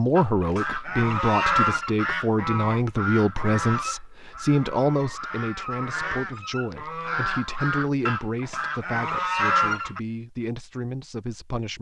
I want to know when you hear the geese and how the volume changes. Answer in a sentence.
You can hear the geese from 0.1 to 10.0 s, getting quieter then louder.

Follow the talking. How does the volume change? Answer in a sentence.
The volume of the talking goes down.